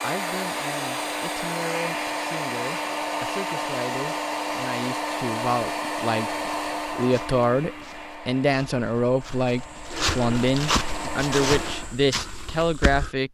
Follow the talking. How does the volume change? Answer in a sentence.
The loudness of the talking goes up.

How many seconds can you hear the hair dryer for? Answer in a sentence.
The hair dryer can be heard for 12 seconds in total.